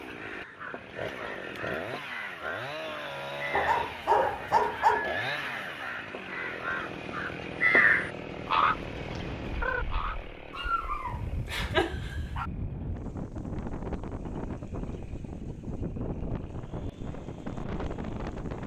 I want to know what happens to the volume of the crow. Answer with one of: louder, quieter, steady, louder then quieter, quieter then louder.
louder.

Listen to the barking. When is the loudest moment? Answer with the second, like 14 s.
5 s.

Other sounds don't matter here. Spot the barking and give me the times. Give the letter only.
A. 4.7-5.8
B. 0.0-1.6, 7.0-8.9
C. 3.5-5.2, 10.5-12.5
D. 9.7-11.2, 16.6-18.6
C.